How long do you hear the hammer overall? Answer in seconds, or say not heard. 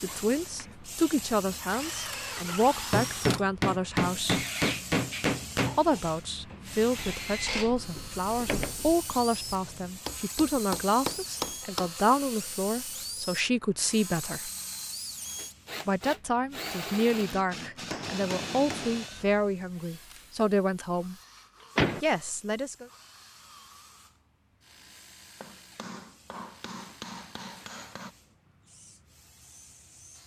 9 s.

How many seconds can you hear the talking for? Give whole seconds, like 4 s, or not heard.
19 s.